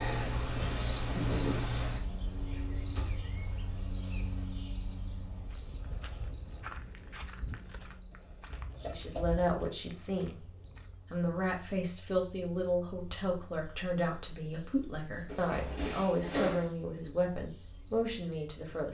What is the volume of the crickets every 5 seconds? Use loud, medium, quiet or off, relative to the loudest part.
loud, medium, quiet, quiet.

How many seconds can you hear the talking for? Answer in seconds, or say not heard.
9 s.